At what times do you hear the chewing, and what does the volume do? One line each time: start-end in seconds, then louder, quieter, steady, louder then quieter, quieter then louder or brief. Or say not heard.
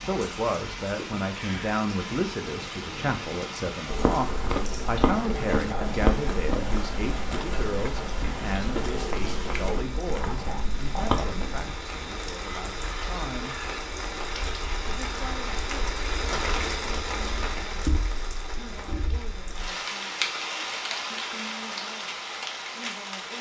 3.9-11.8 quieter then louder.